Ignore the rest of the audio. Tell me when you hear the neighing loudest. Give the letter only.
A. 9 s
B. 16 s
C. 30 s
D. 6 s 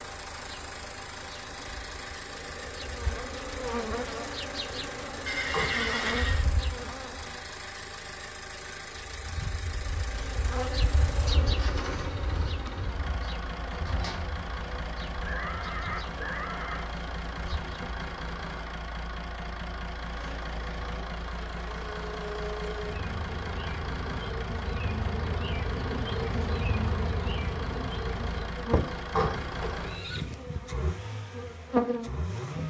D.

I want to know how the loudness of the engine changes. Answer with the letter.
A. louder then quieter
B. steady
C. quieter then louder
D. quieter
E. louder
B.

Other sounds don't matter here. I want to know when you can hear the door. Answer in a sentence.
You can hear the door from 5.5 to 6.2 s, from 13.7 to 14.3 s and from 29.1 to 29.8 s.